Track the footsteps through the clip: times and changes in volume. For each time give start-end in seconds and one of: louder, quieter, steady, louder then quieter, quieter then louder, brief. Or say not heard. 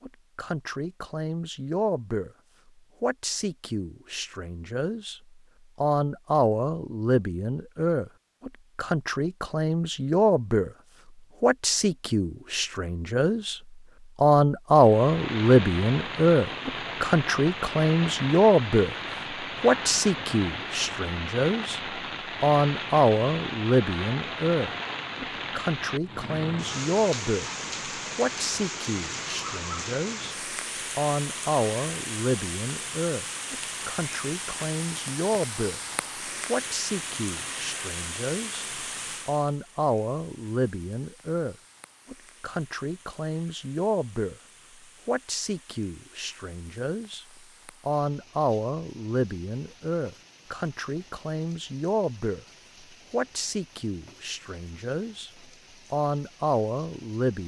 not heard.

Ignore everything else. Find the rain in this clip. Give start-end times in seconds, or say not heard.
14.8-57.4.